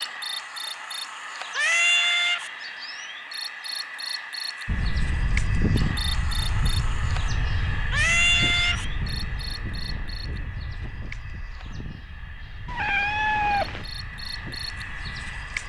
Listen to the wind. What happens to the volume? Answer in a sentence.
The loudness of the wind goes down.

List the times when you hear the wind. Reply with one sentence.
The wind can be heard from 4.7 to 15.6 s.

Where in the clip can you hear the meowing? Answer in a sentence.
You can hear the meowing from 1.6 to 2.5 s, from 7.9 to 8.8 s and from 12.7 to 13.9 s.